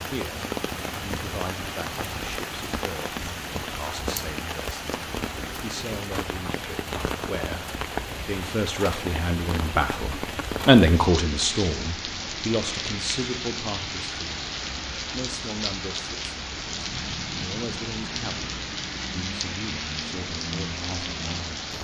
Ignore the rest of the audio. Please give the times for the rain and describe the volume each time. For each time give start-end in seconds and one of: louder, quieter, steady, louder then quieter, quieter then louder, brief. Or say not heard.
0.0-21.7 steady.